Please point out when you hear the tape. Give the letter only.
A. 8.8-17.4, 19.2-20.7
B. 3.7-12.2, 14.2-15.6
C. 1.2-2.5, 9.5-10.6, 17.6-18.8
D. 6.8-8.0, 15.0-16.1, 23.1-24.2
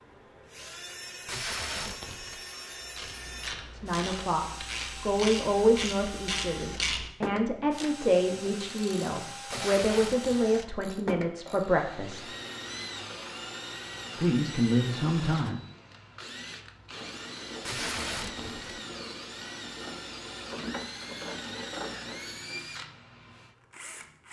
C.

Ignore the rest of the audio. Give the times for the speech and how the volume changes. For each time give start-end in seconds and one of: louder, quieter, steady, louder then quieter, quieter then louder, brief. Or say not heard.
3.7-12.2 steady
14.2-15.6 brief.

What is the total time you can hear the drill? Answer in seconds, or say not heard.
24 s.